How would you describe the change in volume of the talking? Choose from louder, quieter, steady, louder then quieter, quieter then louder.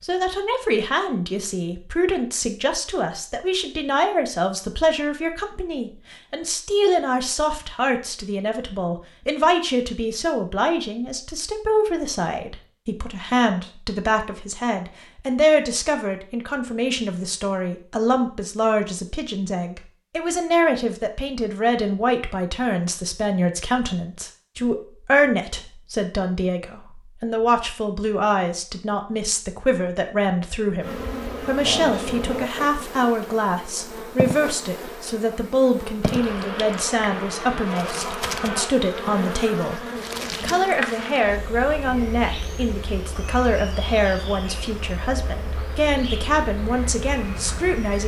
steady.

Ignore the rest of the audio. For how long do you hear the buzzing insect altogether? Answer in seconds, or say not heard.
17 s.